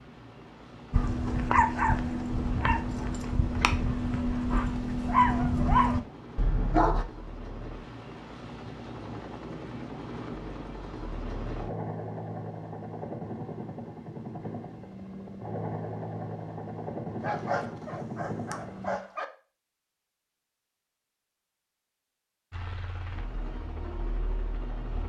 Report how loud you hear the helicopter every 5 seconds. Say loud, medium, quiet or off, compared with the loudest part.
medium, medium, loud, loud, medium.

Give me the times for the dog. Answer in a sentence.
The dog can be heard from 0.9 to 7.0 s and from 17.2 to 19.2 s.